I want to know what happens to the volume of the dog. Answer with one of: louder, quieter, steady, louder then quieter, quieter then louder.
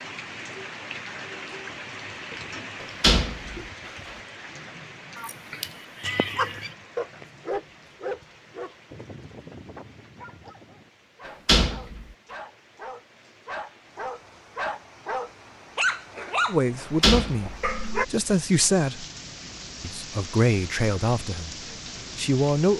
quieter then louder.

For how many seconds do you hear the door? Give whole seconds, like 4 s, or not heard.
3 s.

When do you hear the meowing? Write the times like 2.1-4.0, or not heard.
5.2-6.7.